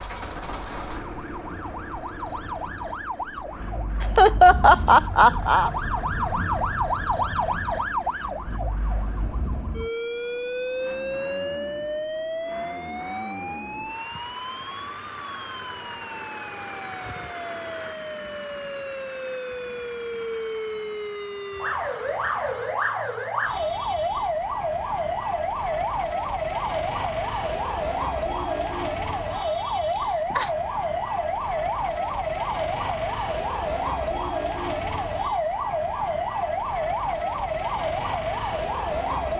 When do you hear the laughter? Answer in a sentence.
The laughter can be heard from 4.0 to 5.7 s and from 29.9 to 30.5 s.